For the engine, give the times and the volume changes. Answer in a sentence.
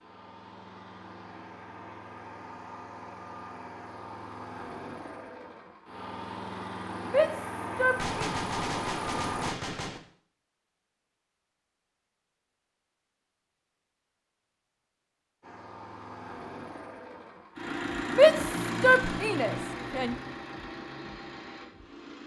You can hear the engine from 0.0 to 9.6 s, getting louder; and from 15.4 to 22.2 s, getting louder then quieter.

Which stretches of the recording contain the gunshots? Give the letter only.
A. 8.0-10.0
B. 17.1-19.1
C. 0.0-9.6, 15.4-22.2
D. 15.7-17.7
A.